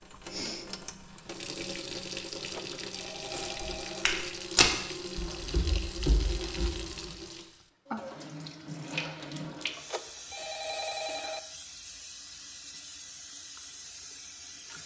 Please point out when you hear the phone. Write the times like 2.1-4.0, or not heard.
2.4-4.0, 9.7-11.4.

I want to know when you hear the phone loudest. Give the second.
11 s.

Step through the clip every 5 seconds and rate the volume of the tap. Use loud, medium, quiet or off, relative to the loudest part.
loud, loud, medium.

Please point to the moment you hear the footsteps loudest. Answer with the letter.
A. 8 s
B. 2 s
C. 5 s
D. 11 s
C.